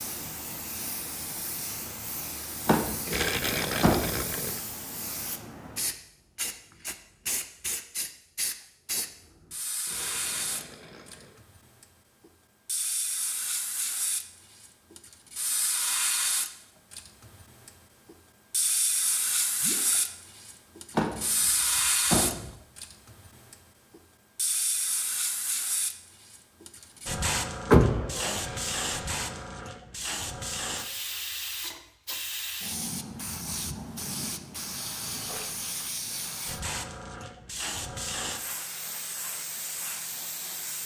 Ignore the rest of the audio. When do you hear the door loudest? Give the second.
28 s.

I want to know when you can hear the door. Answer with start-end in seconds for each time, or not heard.
2.6-4.2, 20.9-22.6, 27.7-28.4.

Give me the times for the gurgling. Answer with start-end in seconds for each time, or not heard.
3.0-4.6, 9.8-11.4, 19.6-20.1, 28.2-29.6, 35.0-35.5.